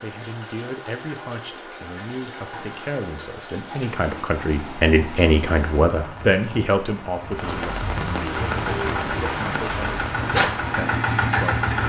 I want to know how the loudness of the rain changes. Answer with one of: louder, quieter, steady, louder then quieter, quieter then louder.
louder.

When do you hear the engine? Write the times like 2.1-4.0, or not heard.
8.3-11.8.